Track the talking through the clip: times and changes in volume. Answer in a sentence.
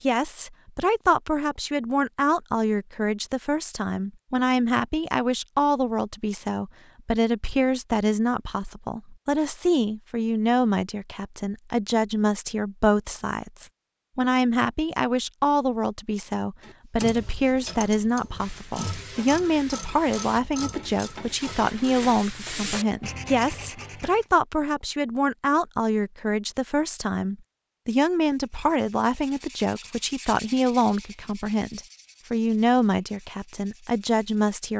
The talking can be heard from 0.0 to 34.7 s, at a steady volume.